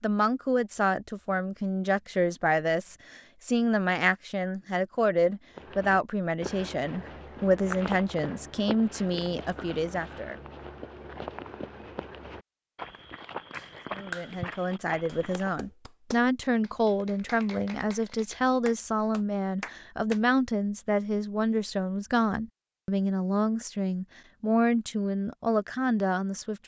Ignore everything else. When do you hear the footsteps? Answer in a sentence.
You can hear the footsteps from 5.5 to 15.6 s.